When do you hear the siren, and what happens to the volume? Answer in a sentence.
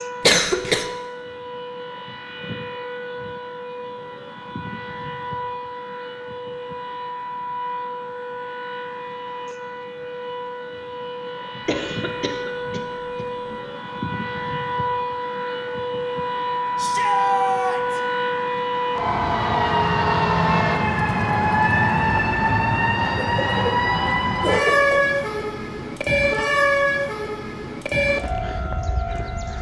The siren can be heard from 0.0 to 29.5 s, getting louder.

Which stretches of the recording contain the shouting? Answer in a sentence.
You can hear the shouting from 16.8 to 18.0 s.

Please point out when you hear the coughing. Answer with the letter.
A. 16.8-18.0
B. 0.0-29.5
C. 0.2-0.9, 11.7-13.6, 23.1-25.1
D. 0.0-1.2
C.